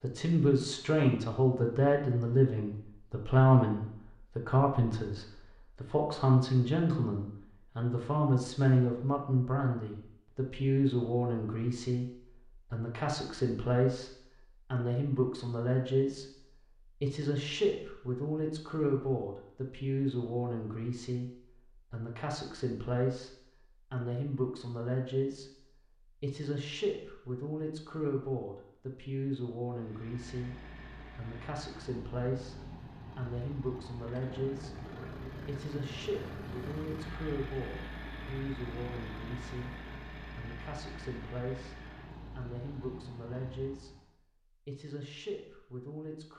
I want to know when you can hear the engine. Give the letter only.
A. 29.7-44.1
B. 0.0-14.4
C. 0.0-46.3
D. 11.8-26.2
A.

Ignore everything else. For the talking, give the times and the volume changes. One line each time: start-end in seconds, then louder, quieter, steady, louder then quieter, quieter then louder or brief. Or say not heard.
0.0-46.3 quieter.